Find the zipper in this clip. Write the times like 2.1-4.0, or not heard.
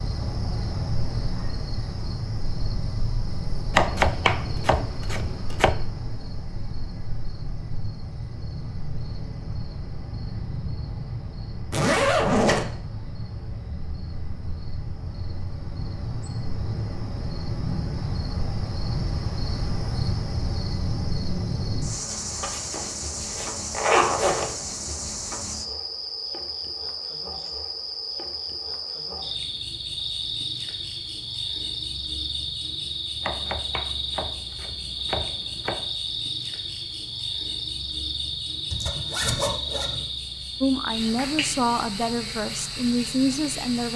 11.7-12.7, 22.5-24.5, 38.7-40.0.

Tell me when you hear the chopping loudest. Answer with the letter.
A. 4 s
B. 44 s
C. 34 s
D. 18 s
A.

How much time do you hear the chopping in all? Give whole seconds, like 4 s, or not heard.
5 s.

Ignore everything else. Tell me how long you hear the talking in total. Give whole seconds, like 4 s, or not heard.
3 s.